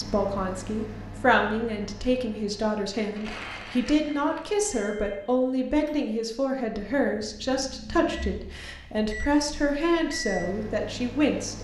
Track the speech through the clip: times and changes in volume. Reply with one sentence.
The speech can be heard from 0.0 to 11.5 s, at a steady volume.